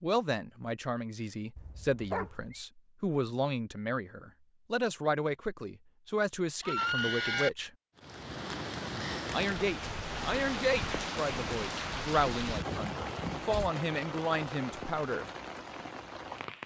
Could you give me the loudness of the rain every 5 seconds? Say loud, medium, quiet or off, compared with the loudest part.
off, loud, loud, medium.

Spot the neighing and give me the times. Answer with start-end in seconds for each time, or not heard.
1.6-2.6, 6.6-7.5, 12.4-13.7.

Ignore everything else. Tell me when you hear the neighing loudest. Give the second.
7 s.